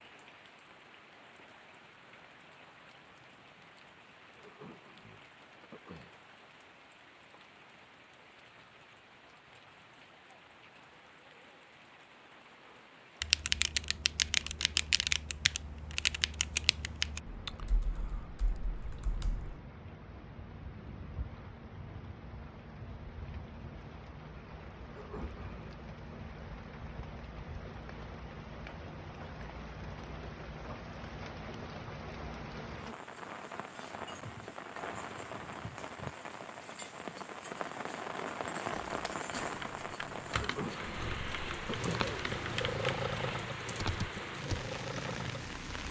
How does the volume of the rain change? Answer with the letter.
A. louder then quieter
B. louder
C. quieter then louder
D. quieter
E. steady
B.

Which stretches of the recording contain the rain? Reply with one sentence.
You can hear the rain from 0.0 to 45.8 s.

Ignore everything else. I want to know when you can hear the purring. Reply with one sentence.
You can hear the purring from 41.0 to 45.8 s.